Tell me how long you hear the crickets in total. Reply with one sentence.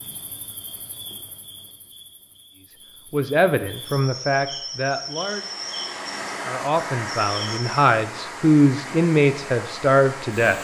The crickets can be heard for 8 seconds in total.